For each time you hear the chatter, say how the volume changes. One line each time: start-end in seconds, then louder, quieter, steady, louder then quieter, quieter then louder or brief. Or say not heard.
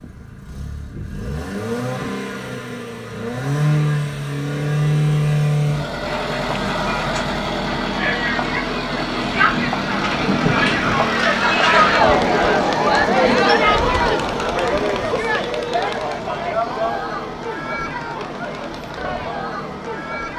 6.0-20.3 louder then quieter.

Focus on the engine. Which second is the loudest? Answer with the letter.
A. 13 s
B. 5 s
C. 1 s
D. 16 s
B.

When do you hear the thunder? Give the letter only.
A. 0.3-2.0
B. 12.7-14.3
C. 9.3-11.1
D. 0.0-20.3
C.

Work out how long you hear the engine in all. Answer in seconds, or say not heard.
20 s.